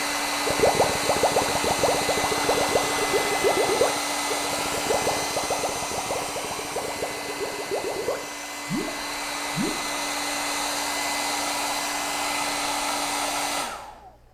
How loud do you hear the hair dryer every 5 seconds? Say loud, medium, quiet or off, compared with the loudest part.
loud, medium, loud.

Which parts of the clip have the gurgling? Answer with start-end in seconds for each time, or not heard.
0.5-9.8.